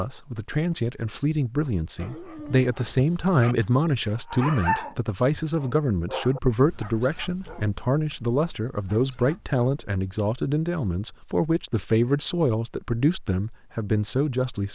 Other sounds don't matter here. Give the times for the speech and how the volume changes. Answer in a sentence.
The speech can be heard from 0.0 to 14.7 s, at a steady volume.